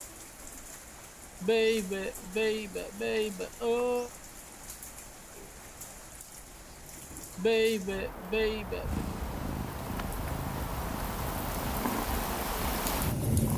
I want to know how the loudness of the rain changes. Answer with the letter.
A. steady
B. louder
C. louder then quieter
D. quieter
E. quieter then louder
B.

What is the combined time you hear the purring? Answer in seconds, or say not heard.
5 s.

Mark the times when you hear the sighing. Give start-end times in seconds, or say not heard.
1.4-4.1, 7.3-9.0.